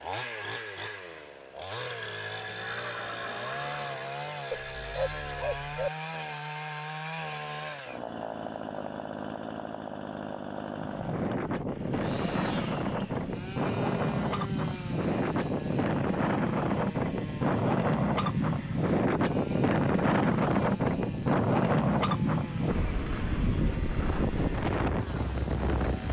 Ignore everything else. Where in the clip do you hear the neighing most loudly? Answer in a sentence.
The loudest moment of the neighing is at 3 seconds.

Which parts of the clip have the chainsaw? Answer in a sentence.
The chainsaw can be heard from 0.0 to 26.0 s.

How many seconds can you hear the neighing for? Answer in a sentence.
You can hear the neighing for 2 seconds altogether.